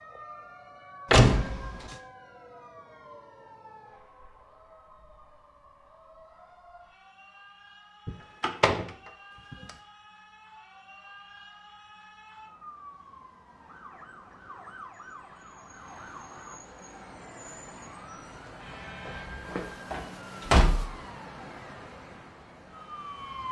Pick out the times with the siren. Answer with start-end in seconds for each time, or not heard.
0.0-23.4.